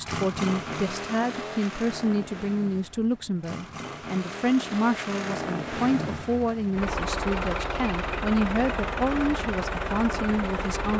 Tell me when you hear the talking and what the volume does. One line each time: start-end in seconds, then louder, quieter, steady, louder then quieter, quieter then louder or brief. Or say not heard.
0.0-10.9 steady.